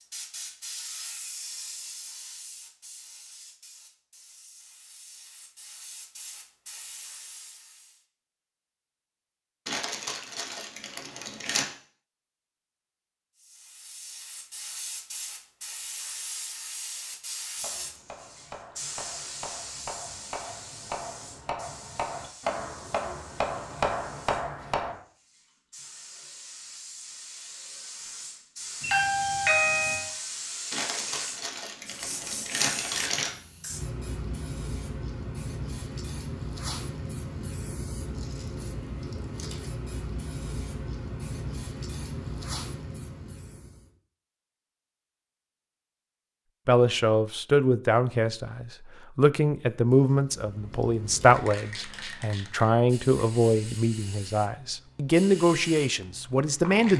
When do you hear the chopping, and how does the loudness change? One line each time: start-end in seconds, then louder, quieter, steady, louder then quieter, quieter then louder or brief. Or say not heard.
17.6-24.9 louder.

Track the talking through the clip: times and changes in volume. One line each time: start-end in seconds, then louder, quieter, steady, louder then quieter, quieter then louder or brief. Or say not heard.
46.6-56.9 steady.